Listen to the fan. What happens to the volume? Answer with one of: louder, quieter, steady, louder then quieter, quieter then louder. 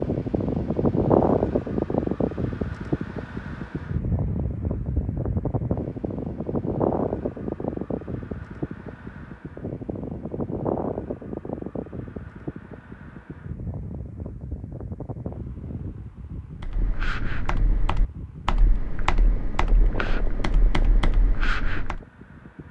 quieter.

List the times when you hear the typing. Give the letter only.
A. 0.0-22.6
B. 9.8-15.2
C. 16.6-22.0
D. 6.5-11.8
C.